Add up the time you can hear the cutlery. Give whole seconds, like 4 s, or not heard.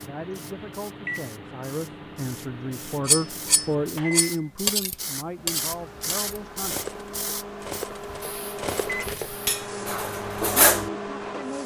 8 s.